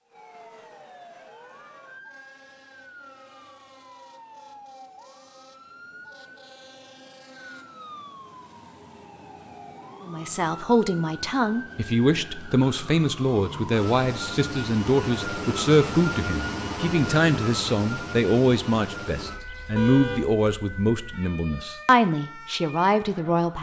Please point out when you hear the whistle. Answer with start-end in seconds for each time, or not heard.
not heard.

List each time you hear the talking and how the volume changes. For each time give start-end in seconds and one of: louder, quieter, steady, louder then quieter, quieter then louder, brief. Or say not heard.
10.1-23.5 steady.